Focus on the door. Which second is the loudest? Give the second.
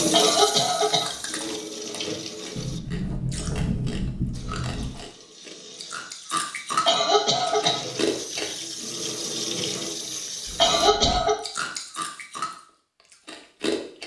4 s.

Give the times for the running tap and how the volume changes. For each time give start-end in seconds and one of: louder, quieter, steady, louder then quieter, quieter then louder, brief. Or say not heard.
0.0-2.8 brief
4.3-10.9 louder.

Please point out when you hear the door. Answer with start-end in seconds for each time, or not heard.
2.5-5.0, 10.4-11.2.